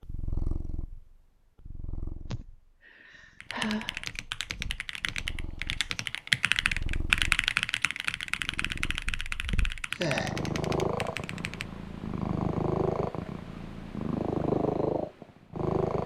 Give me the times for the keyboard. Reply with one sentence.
The keyboard can be heard from 3.4 to 11.7 s.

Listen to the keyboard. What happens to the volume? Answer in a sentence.
The loudness of the keyboard goes up, then down.